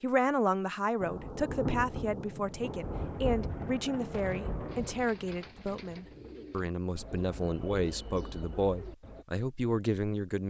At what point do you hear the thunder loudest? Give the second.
2 s.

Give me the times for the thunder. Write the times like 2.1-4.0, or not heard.
1.0-5.1.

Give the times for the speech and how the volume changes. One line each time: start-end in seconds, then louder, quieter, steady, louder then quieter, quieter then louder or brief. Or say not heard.
0.0-10.4 steady.